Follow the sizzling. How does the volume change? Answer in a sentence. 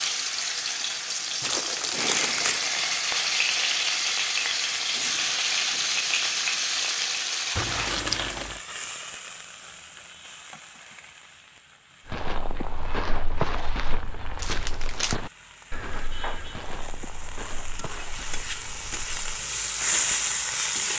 The volume of the sizzling goes down, then up.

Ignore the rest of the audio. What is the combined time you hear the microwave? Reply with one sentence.
The microwave can't be heard in this clip.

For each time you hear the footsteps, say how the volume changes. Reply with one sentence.
The footsteps can be heard from 12.1 to 19.4 s, getting quieter.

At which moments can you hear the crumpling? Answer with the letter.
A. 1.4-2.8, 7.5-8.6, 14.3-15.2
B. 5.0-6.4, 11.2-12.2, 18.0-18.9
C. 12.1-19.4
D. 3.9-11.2
A.